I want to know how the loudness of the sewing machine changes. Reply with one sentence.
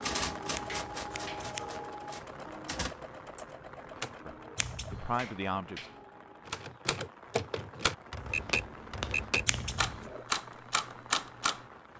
The loudness of the sewing machine goes down.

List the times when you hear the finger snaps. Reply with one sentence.
You can hear the finger snaps from 0.7 to 1.5 s, from 5.2 to 6.0 s and from 8.3 to 10.1 s.